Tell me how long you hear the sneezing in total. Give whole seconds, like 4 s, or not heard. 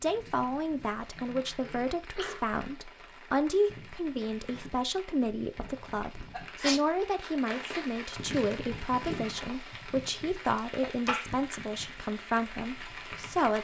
3 s.